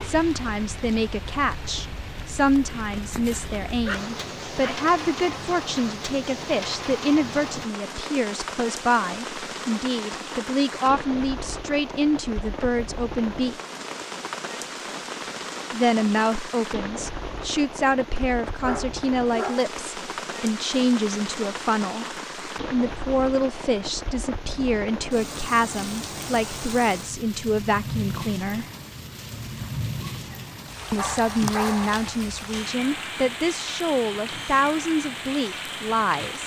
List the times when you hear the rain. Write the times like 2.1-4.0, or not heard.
0.0-36.4.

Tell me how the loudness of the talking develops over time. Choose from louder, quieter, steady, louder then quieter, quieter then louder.
steady.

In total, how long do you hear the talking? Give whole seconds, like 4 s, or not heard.
32 s.